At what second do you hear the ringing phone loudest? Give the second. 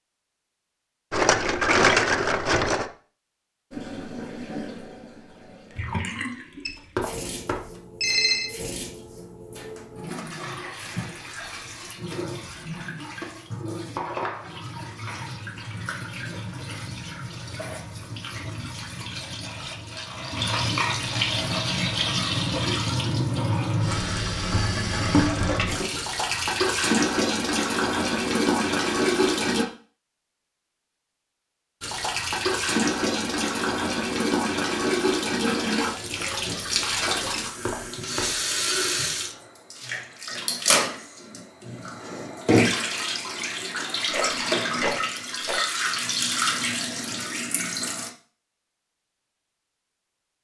8 s.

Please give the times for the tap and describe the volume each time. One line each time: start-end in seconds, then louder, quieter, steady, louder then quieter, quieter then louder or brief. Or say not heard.
3.7-29.6 louder
31.8-48.1 steady.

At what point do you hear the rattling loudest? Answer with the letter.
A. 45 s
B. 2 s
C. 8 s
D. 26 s
B.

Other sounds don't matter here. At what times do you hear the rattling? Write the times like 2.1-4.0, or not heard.
1.1-2.9, 44.1-45.6.